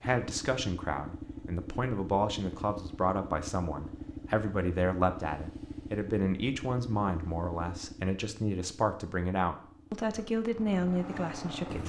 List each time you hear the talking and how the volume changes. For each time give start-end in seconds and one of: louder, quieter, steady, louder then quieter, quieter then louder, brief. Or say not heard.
0.0-11.8 steady.